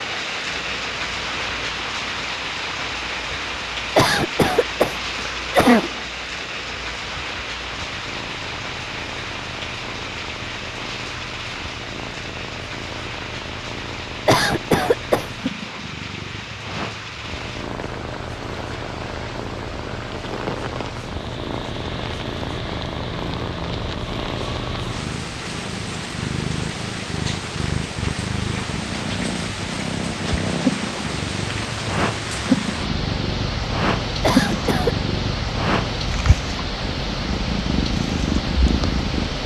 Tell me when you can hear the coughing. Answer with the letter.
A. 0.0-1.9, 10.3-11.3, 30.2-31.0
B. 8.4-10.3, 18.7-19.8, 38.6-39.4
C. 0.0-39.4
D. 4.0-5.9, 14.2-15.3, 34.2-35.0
D.